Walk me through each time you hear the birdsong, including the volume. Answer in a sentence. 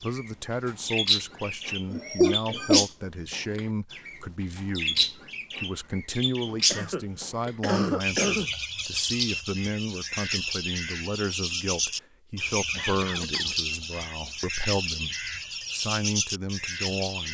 You can hear the birdsong from 0.0 to 17.2 s, at a steady volume.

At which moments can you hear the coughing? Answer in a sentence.
The coughing can be heard from 1.9 to 2.9 s, from 6.7 to 8.5 s and from 12.6 to 14.3 s.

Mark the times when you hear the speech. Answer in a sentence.
The speech can be heard from 0.0 to 17.2 s.